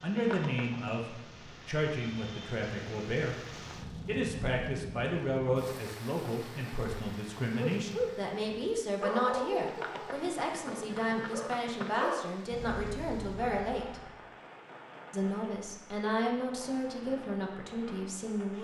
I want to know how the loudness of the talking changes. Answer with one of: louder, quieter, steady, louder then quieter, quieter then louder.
steady.